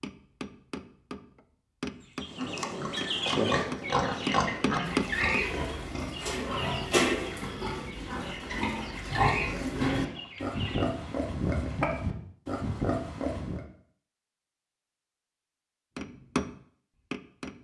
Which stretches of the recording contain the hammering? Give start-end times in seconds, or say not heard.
0.0-5.5, 15.9-17.5.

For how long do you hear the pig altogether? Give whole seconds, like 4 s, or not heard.
11 s.